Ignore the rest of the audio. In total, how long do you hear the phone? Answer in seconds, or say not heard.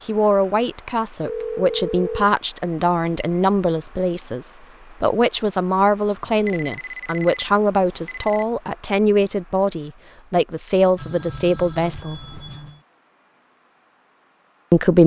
5 s.